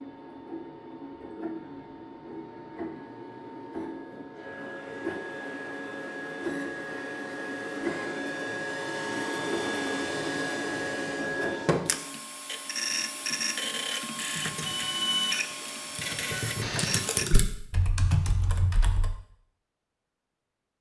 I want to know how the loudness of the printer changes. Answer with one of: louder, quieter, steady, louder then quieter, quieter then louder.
louder.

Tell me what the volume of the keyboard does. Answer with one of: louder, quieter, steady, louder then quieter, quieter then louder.
louder.